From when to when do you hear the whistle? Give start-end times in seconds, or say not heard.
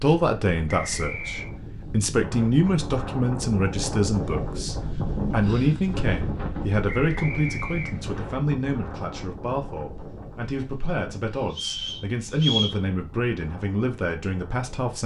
0.7-1.5, 6.8-8.2, 11.5-12.8.